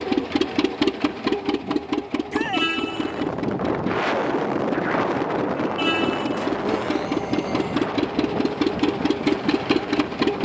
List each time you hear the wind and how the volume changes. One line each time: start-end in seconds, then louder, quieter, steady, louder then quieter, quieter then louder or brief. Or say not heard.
2.8-10.3 quieter.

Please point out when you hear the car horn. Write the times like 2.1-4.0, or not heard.
2.5-3.3, 5.8-6.4.